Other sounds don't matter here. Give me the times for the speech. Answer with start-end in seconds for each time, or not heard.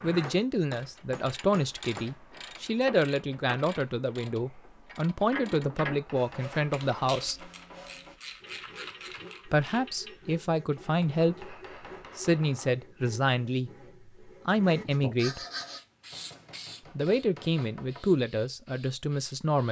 0.0-7.5, 9.4-11.6, 12.2-15.4, 16.9-19.6.